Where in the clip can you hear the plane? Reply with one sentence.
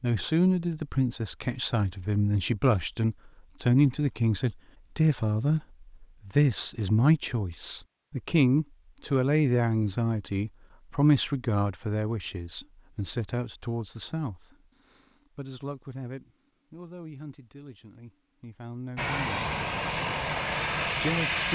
The plane can be heard from 18.9 to 21.5 s.